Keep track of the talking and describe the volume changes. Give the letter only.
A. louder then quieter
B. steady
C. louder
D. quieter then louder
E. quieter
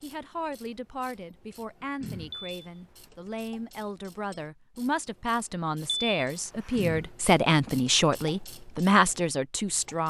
C.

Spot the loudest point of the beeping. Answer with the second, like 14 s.
6 s.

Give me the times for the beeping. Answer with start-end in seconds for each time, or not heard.
2.3-2.8, 5.9-6.8.